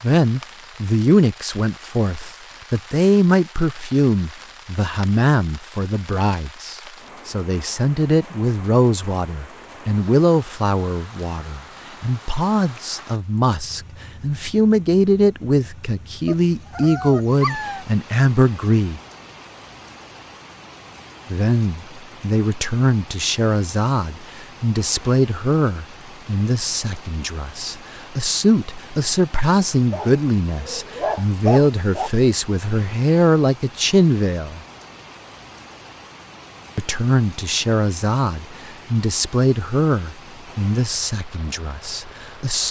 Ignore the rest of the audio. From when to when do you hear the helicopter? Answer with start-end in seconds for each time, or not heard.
not heard.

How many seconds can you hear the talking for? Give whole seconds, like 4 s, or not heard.
38 s.